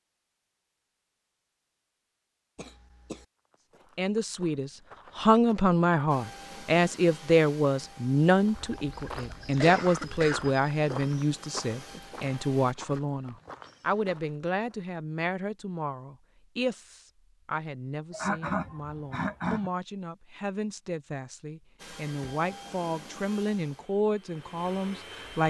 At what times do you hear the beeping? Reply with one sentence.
You can't hear the beeping here.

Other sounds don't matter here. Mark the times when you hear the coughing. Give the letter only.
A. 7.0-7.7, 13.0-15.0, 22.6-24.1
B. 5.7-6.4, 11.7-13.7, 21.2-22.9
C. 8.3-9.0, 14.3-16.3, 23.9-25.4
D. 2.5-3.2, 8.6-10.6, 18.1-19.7
D.